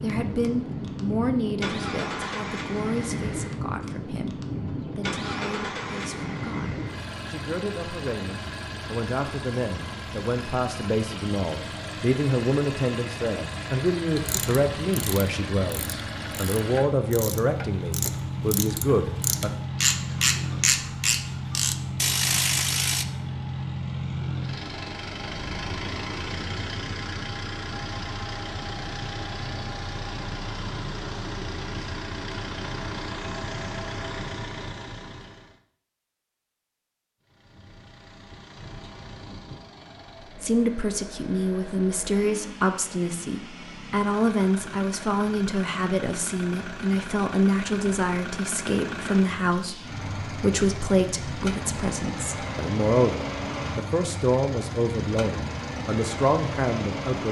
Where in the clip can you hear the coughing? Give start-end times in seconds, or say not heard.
not heard.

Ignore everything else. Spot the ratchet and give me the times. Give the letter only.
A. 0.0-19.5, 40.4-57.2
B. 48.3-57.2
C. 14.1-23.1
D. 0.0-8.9
C.